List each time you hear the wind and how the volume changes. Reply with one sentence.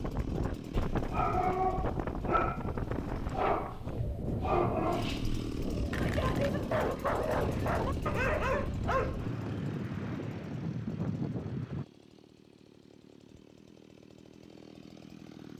You can hear the wind from 0.0 to 11.8 s, at a steady volume.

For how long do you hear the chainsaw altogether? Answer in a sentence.
The chainsaw can be heard for 14 seconds in total.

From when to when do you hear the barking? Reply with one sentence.
You can hear the barking from 0.9 to 9.2 s.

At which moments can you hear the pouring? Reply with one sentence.
You can't hear the pouring here.